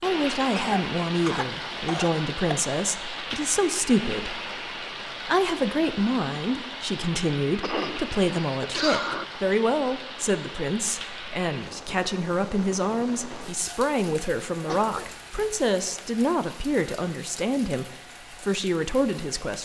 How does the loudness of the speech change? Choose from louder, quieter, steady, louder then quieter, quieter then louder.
steady.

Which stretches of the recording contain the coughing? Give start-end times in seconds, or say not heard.
0.6-2.5, 7.6-9.2, 14.7-15.5.